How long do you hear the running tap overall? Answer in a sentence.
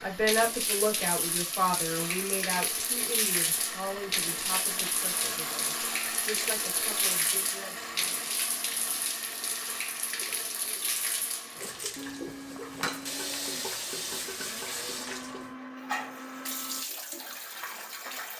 The running tap can be heard for 18 seconds in total.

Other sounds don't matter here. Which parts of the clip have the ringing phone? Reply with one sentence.
You can't hear the ringing phone here.